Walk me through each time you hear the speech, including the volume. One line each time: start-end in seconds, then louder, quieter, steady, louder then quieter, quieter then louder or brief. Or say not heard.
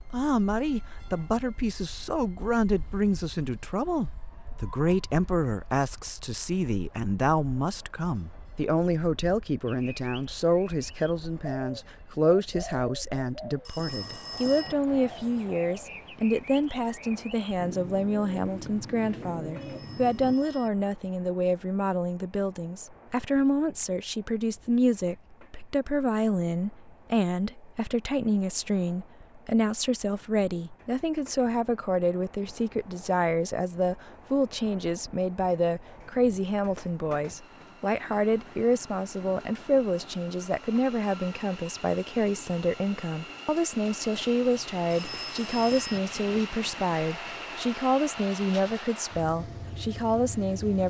0.1-50.8 steady.